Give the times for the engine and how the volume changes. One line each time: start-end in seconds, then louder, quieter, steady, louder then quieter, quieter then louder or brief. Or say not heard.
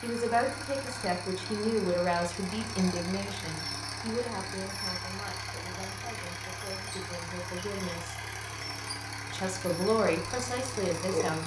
0.0-11.4 steady.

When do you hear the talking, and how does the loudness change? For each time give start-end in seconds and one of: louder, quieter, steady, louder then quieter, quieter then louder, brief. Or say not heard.
0.0-8.2 quieter
9.3-11.4 brief.